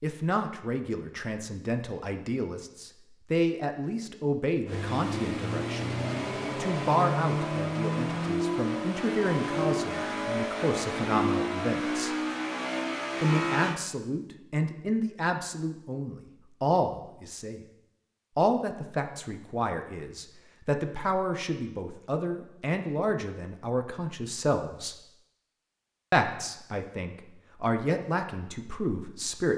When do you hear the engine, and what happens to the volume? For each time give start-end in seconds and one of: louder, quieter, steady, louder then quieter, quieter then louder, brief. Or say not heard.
4.7-13.8 steady.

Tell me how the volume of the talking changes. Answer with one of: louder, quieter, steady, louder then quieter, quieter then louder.
steady.